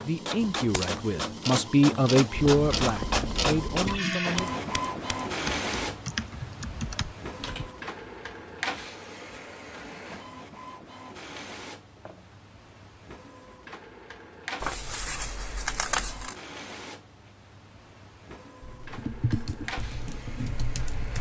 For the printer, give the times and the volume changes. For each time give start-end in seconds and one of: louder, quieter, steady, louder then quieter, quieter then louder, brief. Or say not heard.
0.0-21.1 quieter.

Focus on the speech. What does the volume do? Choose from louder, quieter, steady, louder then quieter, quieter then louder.
louder then quieter.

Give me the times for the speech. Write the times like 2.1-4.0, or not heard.
0.0-4.5.